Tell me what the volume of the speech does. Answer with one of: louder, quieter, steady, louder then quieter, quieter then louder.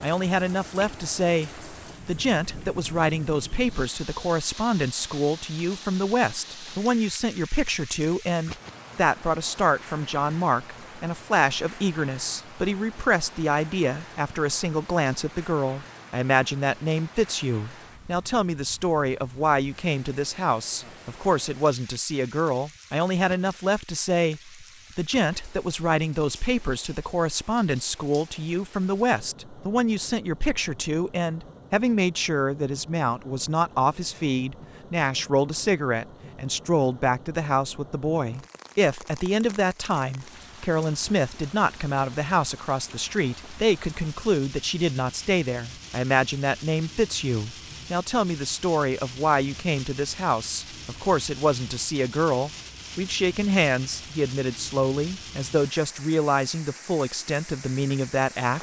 steady.